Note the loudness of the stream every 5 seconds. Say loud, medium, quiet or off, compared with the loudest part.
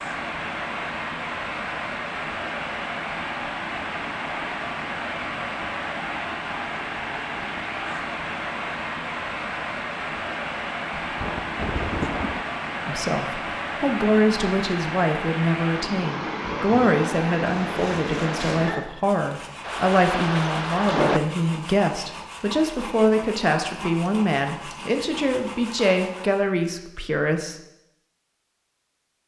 loud, loud, loud, loud, off, off.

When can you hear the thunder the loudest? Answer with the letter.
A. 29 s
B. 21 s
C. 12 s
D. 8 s
B.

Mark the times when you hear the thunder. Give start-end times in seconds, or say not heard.
11.0-12.4, 19.6-21.2.